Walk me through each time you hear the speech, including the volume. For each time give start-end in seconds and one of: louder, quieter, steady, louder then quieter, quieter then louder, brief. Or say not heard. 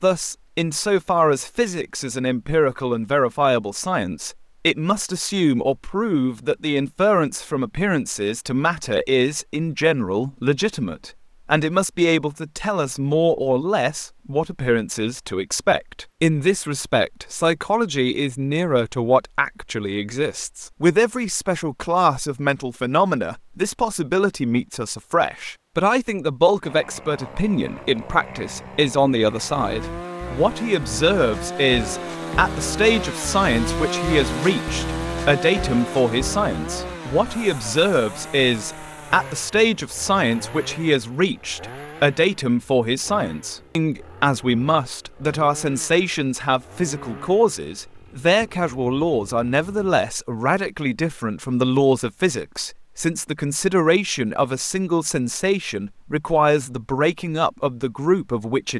0.0-58.7 steady.